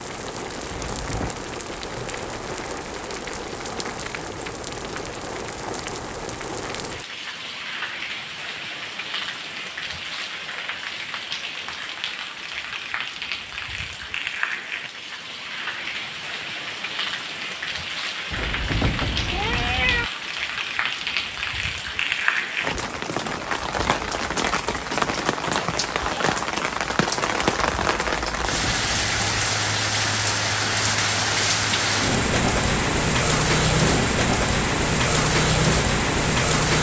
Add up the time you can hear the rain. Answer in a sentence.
You can hear the rain for 37 seconds altogether.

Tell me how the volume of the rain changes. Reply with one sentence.
The volume of the rain goes up.